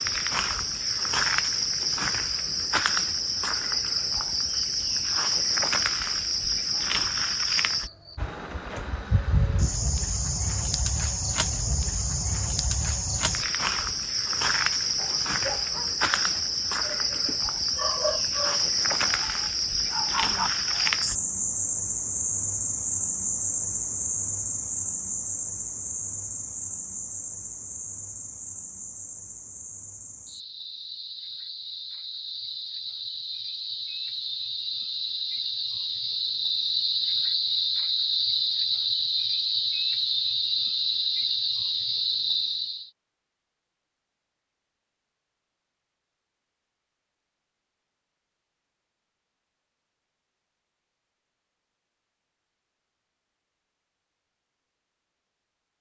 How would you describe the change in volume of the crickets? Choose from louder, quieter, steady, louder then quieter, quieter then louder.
quieter then louder.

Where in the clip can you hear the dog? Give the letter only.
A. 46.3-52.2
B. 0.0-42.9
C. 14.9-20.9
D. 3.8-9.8
C.